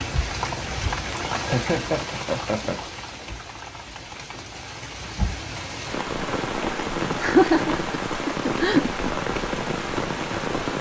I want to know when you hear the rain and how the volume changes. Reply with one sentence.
The rain can be heard from 0.0 to 10.7 s, getting quieter then louder.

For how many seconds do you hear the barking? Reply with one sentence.
The barking can't be heard in this clip.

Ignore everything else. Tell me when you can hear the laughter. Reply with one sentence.
The laughter can be heard from 1.4 to 2.8 s and from 7.2 to 9.0 s.